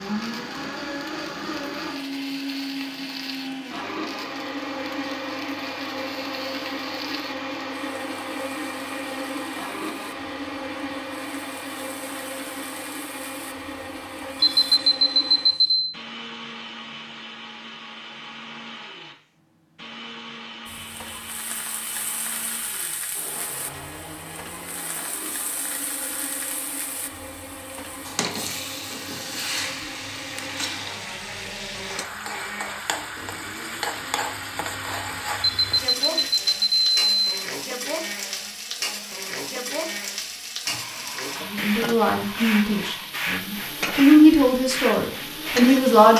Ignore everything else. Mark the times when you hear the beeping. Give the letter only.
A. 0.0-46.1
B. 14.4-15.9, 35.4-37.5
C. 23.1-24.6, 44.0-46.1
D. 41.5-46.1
B.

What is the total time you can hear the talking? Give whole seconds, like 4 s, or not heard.
5 s.